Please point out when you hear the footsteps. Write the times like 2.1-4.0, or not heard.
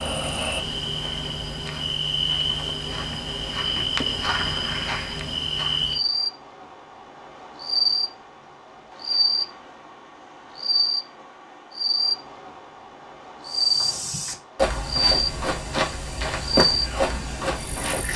0.1-6.3, 13.4-18.1.